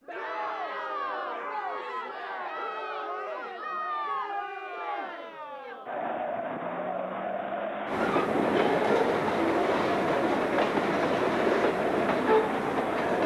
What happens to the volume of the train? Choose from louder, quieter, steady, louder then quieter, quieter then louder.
steady.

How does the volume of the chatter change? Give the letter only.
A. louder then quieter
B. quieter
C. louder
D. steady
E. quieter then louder
D.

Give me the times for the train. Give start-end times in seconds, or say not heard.
7.8-13.2.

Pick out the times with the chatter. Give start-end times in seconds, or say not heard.
0.1-13.2.